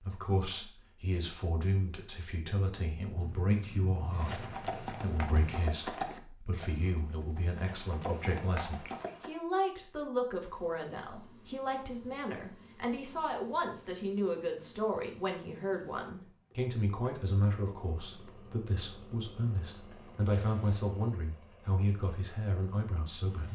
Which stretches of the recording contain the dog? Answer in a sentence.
The dog can't be heard in this clip.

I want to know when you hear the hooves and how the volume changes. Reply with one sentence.
You can hear the hooves from 4.1 to 9.3 s, getting quieter then louder.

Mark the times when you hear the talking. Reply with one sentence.
The talking can be heard from 0.0 to 23.5 s.